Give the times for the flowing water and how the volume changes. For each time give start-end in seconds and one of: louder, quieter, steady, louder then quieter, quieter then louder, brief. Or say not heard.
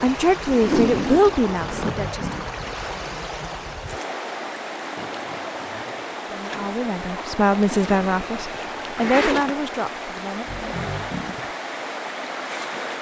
0.0-12.9 steady.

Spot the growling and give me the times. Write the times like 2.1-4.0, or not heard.
1.6-2.6, 5.0-6.0, 10.4-11.6.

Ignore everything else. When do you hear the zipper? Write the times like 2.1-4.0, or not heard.
0.5-2.0, 7.7-9.5.